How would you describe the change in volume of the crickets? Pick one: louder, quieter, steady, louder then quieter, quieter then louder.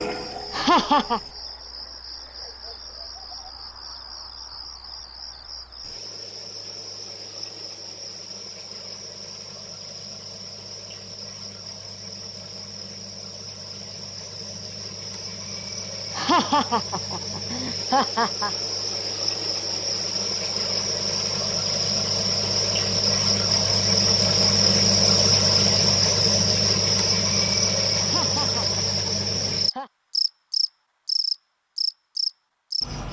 louder.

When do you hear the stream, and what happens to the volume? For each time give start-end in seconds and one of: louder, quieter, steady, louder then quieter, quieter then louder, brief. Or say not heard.
not heard.